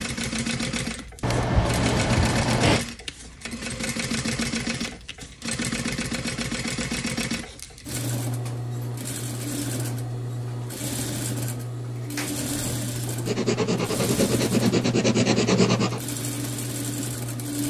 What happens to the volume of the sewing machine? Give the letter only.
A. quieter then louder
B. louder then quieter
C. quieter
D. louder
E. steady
E.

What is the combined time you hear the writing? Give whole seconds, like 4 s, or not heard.
4 s.